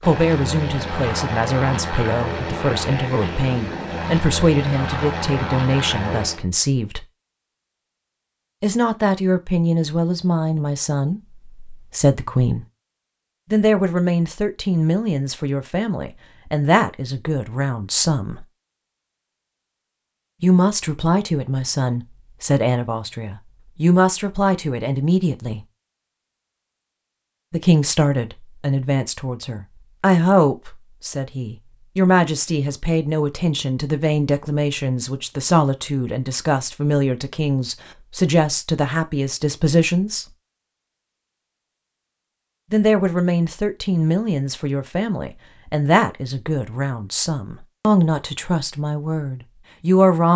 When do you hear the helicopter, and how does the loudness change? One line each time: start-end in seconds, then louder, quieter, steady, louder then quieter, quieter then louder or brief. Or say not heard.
0.0-6.5 steady.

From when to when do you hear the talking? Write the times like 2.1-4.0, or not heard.
0.0-7.0, 8.6-12.7, 13.5-18.4, 20.4-25.6, 27.5-40.2, 42.7-50.3.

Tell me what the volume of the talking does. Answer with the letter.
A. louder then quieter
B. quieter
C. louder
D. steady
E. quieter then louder
D.